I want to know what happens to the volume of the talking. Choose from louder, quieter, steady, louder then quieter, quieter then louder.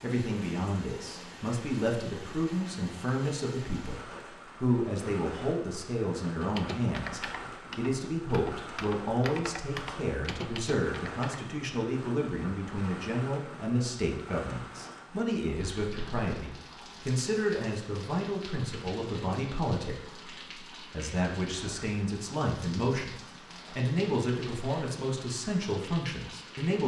steady.